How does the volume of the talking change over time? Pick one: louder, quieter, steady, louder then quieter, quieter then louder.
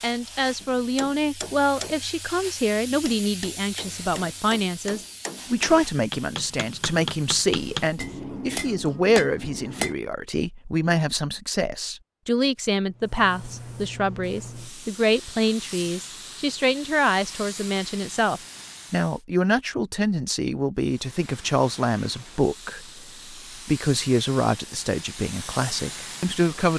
steady.